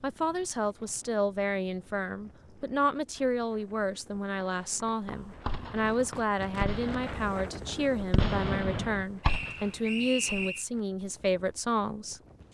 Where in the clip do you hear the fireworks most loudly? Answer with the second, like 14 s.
8 s.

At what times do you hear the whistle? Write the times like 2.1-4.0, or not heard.
9.2-10.7.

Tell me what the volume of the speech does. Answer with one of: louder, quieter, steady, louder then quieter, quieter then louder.
steady.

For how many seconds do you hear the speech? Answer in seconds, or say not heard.
12 s.